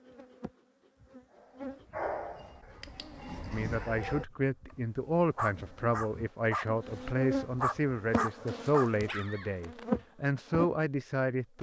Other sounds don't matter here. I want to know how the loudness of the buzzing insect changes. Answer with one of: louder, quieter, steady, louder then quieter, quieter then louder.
quieter then louder.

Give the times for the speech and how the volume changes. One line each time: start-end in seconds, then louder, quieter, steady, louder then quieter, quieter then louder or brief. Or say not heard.
3.5-11.5 steady.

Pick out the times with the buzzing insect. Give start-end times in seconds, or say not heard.
0.0-10.7.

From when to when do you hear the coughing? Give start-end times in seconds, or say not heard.
not heard.